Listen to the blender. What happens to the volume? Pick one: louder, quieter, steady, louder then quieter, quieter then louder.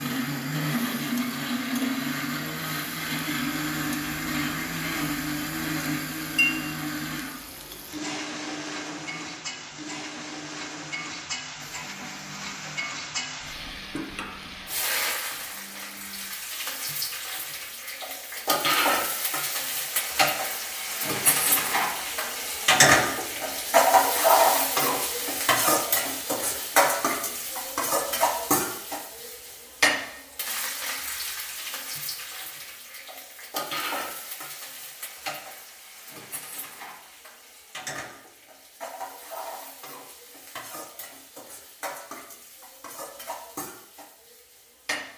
quieter.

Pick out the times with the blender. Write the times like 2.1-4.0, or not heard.
0.0-16.3.